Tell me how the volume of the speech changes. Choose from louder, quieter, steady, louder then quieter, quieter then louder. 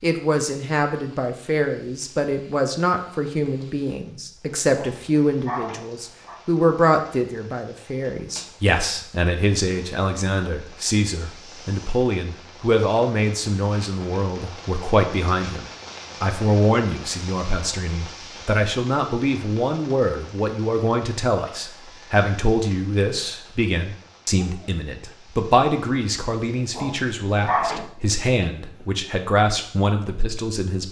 steady.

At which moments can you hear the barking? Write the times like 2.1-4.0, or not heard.
4.7-6.4, 26.6-27.9.